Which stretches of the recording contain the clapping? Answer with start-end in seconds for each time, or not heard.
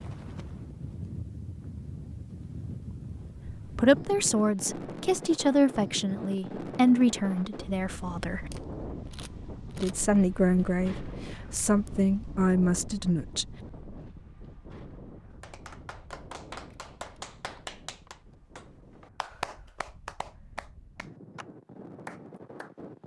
15.4-21.4, 22.1-22.7.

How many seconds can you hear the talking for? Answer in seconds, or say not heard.
9 s.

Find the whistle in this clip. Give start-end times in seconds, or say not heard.
not heard.